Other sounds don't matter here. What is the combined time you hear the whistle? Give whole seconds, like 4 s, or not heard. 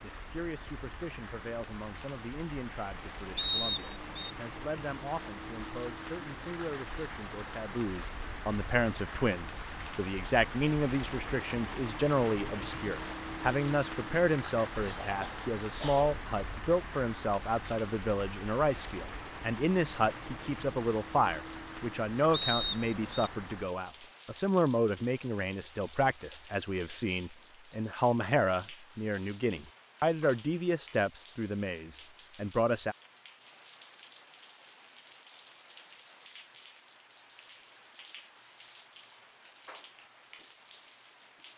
2 s.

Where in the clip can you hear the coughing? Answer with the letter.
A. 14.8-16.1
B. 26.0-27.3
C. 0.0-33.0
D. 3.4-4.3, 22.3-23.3
A.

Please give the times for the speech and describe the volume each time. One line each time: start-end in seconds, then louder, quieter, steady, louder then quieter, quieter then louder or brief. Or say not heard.
0.0-33.0 louder.